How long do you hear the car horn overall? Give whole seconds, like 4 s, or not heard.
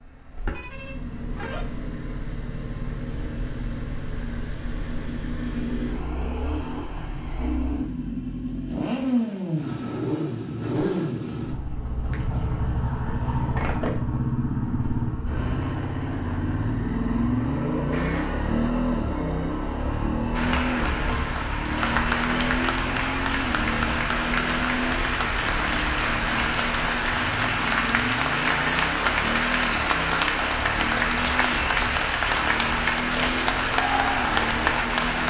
2 s.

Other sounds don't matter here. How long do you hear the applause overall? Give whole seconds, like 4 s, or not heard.
15 s.